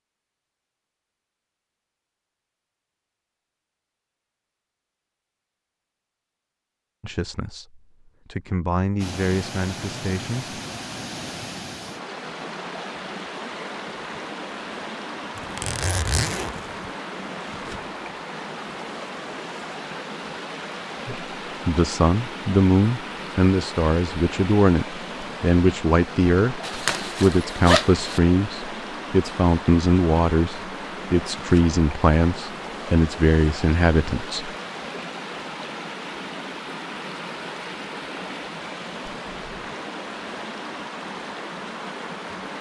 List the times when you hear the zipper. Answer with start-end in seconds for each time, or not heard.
15.3-16.9, 26.6-28.2.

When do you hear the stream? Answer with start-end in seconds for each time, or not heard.
8.9-42.5.